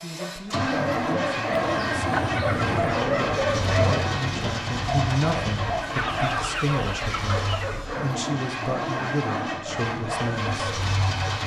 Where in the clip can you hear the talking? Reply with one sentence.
You can hear the talking from 0.0 to 10.7 s.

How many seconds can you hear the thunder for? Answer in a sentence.
The thunder can be heard for 2 seconds in total.